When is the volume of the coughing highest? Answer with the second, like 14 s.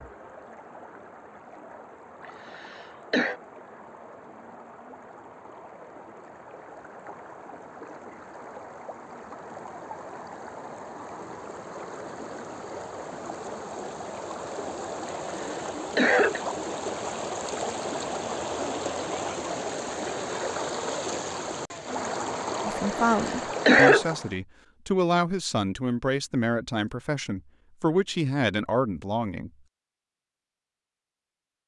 24 s.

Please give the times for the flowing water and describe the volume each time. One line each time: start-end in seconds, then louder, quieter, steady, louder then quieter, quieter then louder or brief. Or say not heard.
0.0-24.4 louder.